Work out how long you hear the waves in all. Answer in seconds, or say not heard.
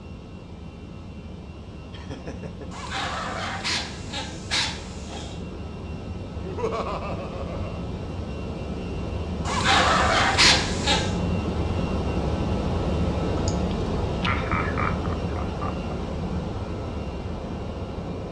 not heard.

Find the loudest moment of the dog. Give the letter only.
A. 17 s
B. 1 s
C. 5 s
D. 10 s
D.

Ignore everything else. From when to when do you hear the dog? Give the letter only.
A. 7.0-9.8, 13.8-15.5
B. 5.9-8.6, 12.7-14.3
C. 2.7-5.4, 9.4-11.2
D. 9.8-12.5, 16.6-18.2
C.